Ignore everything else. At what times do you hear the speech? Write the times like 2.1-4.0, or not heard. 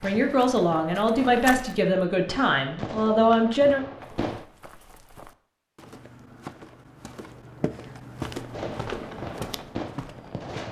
0.0-3.9.